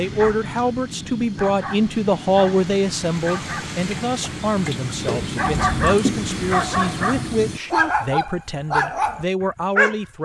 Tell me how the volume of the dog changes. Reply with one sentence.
The volume of the dog goes up.